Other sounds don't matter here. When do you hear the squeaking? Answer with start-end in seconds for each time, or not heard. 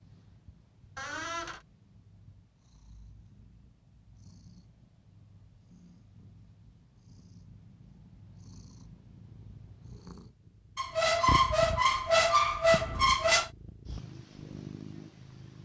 0.9-1.6, 10.8-13.5.